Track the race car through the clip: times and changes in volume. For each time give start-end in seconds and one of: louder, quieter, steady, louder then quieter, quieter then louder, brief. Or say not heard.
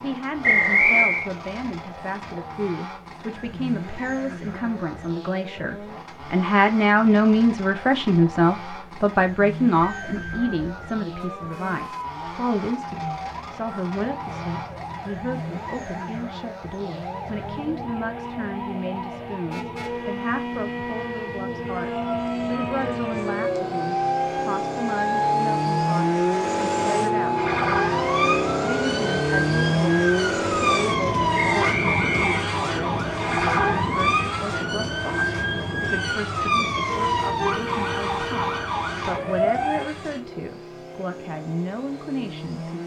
0.0-42.8 louder then quieter.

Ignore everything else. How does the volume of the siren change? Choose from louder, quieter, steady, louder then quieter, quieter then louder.
louder.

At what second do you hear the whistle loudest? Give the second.
1 s.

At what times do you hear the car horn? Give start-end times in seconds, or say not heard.
11.3-12.2, 19.4-20.1, 36.9-38.7.